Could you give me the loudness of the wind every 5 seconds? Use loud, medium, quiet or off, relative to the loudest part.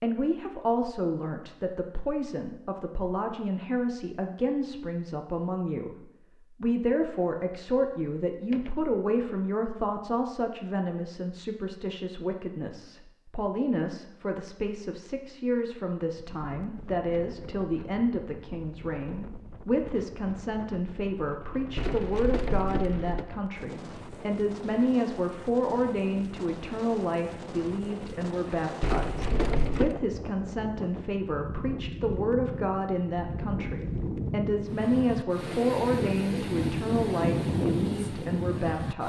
off, off, off, quiet, quiet, medium, medium, loud.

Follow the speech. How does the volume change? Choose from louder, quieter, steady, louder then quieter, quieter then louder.
steady.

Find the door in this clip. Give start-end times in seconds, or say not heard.
7.0-8.9, 21.8-23.3, 28.8-29.9.